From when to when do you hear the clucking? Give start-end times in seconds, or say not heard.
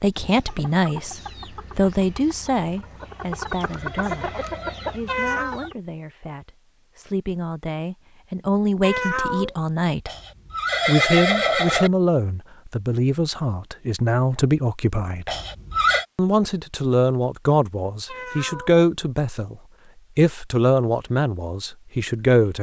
0.1-5.8.